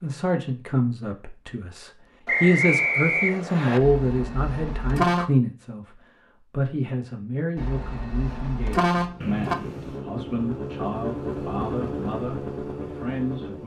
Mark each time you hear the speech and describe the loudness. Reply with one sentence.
The speech can be heard from 0.0 to 13.6 s, getting quieter.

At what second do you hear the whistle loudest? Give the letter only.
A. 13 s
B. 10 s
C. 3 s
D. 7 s
C.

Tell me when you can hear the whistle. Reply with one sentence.
The whistle can be heard from 2.2 to 3.8 s and from 9.2 to 10.1 s.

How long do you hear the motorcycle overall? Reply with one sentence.
You can hear the motorcycle for 5 seconds altogether.